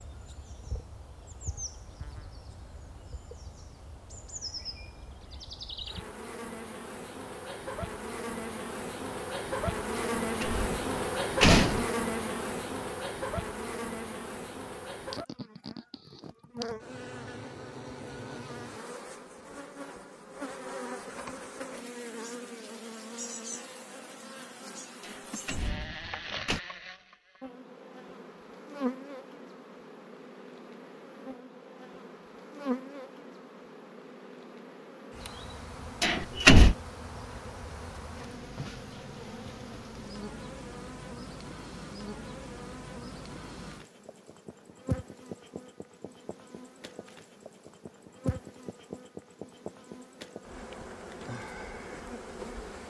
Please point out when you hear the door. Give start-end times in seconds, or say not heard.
10.4-11.8, 25.0-26.6, 36.0-36.8.